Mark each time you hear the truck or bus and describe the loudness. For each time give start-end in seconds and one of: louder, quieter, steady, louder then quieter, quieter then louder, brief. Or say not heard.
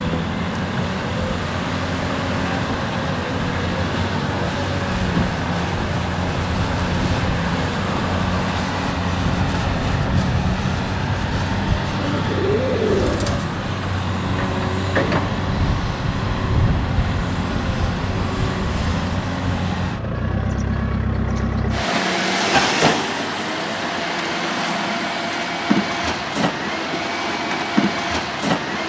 0.0-28.8 steady.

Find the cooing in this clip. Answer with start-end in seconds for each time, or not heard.
12.0-13.6.